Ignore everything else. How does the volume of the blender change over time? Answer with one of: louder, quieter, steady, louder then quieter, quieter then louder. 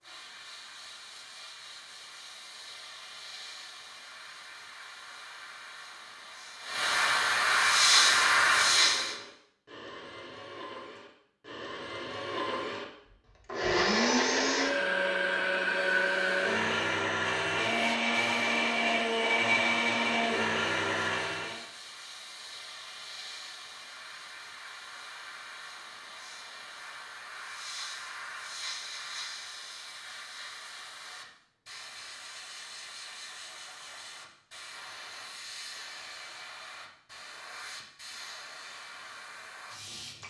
louder.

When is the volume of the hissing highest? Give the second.
8 s.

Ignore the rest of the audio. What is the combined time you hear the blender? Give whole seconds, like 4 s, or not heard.
14 s.